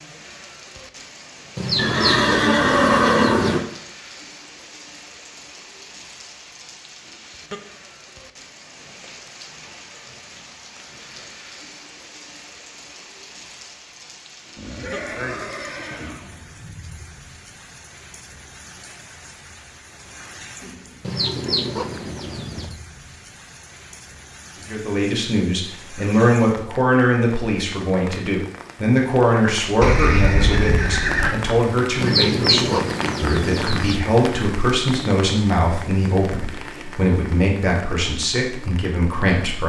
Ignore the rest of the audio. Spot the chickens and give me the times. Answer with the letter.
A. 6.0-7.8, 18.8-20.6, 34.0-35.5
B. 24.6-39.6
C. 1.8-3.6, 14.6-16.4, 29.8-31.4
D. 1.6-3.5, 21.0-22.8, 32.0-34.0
D.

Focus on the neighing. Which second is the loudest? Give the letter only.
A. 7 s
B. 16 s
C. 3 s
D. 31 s
C.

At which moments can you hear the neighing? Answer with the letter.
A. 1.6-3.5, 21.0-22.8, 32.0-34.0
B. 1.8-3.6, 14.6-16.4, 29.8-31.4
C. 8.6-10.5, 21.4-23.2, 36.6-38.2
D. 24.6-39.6
B.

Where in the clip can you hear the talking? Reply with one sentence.
You can hear the talking from 24.6 to 39.6 s.